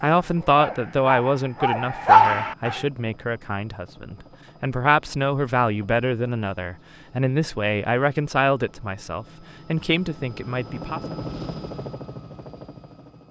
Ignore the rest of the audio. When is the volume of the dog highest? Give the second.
2 s.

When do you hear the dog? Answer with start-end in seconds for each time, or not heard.
0.2-2.8.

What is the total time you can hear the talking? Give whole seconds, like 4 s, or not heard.
11 s.